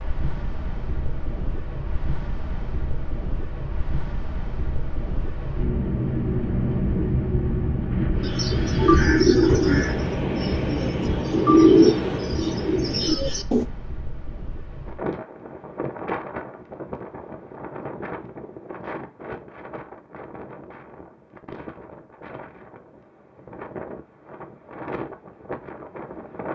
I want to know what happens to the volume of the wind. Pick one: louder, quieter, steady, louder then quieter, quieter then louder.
louder then quieter.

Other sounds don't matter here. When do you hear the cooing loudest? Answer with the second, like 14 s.
12 s.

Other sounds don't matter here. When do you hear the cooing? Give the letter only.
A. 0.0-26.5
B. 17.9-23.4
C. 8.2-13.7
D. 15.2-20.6
C.